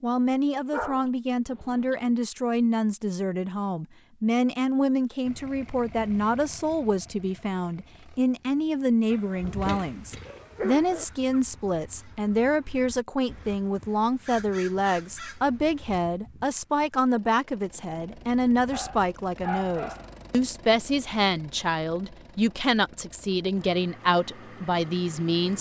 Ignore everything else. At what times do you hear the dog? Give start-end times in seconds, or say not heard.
0.7-2.1, 9.1-11.1, 18.7-20.1.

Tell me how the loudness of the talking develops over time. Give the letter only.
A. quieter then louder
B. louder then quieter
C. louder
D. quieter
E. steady
E.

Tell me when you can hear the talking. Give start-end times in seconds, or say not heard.
0.0-25.5.